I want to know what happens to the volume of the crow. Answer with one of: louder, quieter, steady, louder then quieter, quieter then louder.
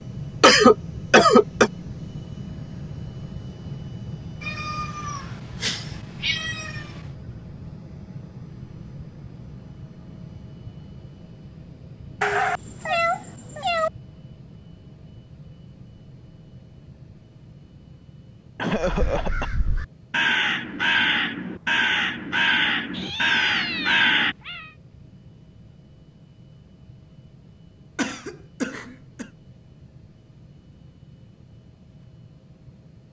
louder.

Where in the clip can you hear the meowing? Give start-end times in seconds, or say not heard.
4.4-7.0, 12.2-13.9, 22.9-24.8.